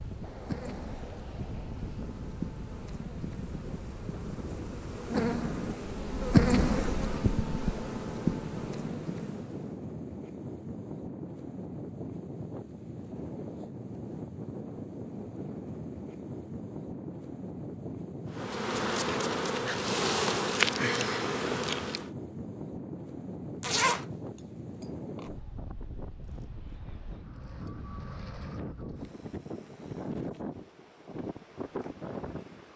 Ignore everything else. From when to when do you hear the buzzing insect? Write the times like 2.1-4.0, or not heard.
0.0-9.8, 18.3-22.1.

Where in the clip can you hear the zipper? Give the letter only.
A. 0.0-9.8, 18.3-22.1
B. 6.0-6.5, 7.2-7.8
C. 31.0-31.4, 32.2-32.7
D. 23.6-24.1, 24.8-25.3
D.